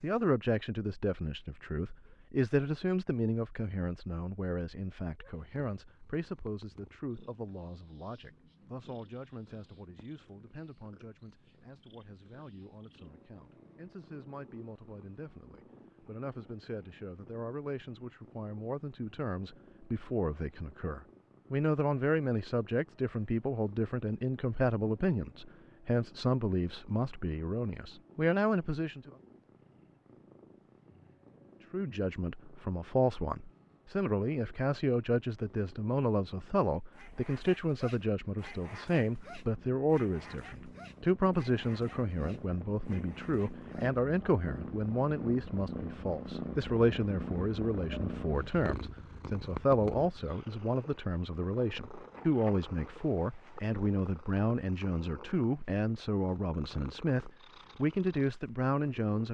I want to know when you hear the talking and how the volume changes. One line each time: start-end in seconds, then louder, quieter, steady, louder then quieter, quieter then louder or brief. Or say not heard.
0.0-29.1 quieter then louder
31.7-59.2 steady.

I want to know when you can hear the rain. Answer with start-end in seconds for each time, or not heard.
not heard.